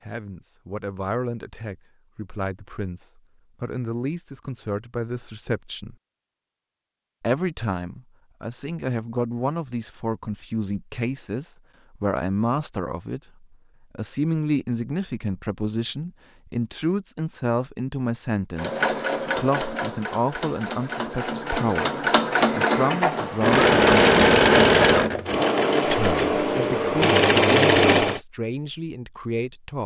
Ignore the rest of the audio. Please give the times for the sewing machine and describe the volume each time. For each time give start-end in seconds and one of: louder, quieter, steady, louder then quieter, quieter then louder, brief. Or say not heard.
18.6-28.2 louder.